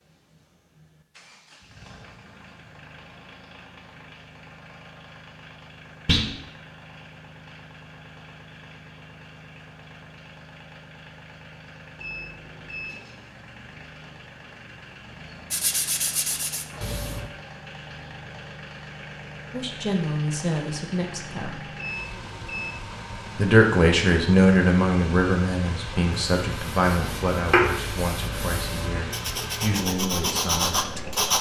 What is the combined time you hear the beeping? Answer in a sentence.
The beeping can be heard for 2 seconds in total.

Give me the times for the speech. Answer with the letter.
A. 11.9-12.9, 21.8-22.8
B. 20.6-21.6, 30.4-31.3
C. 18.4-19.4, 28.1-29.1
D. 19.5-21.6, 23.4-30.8
D.